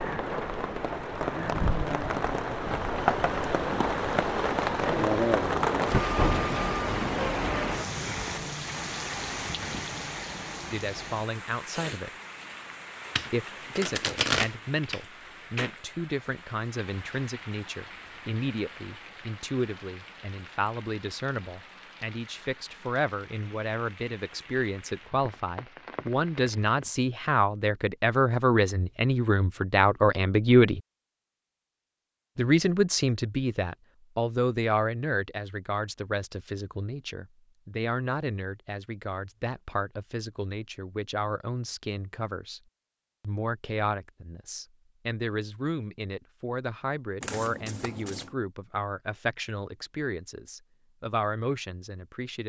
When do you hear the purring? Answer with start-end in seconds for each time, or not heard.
not heard.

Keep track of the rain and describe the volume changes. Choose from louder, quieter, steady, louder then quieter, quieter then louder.
quieter.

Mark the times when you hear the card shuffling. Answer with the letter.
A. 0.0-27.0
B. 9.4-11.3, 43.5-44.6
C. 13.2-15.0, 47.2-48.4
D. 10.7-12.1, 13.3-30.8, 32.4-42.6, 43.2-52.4
C.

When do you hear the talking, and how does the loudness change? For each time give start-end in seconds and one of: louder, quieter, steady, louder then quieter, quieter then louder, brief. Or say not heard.
10.7-12.1 brief
13.3-30.8 louder
32.4-42.6 quieter
43.2-52.4 steady.